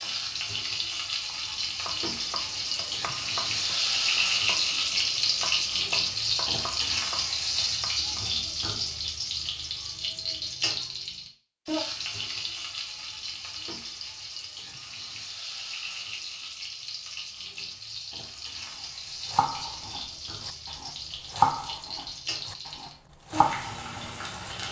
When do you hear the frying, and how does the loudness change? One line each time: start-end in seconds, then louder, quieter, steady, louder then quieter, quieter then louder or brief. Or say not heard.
0.0-24.6 quieter.